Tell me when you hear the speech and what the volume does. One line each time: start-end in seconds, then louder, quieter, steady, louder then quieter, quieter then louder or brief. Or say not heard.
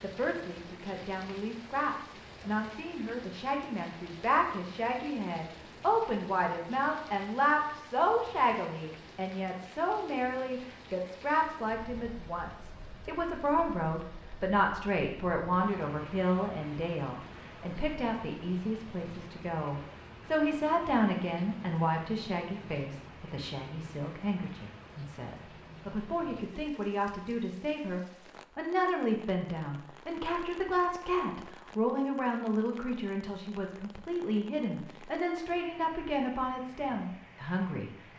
0.0-37.9 steady.